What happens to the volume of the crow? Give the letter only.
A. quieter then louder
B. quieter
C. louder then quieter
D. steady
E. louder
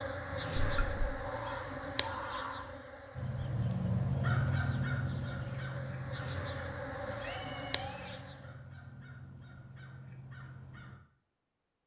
C.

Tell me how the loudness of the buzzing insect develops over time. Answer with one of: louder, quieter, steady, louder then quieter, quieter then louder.
quieter then louder.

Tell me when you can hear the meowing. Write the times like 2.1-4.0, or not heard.
0.6-1.2, 7.2-8.2.